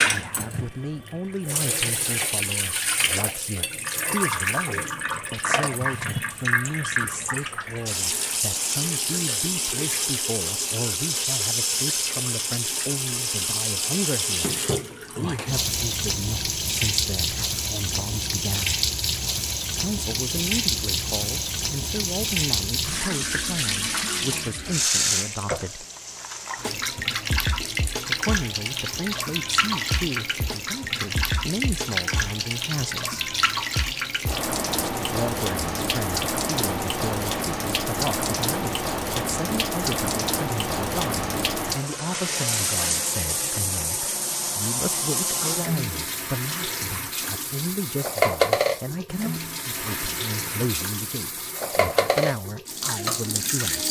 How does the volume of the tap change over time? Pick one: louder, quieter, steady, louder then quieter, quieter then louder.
steady.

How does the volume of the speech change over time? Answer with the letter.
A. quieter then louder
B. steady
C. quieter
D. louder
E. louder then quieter
B.